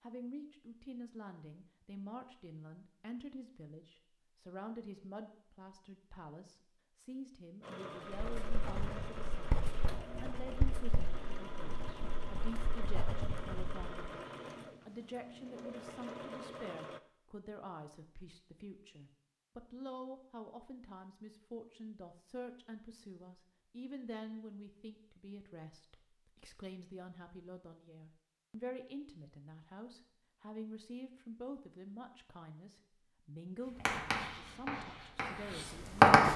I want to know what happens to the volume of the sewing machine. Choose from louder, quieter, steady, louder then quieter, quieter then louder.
steady.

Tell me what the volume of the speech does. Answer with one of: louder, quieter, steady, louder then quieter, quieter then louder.
steady.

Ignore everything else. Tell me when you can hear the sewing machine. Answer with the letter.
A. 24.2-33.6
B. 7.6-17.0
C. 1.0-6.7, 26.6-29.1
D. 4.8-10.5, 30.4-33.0
B.